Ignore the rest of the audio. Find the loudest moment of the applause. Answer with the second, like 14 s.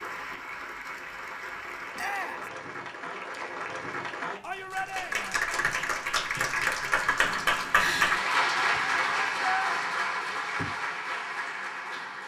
8 s.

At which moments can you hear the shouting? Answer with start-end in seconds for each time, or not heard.
1.9-2.5, 4.4-5.4, 8.6-9.8.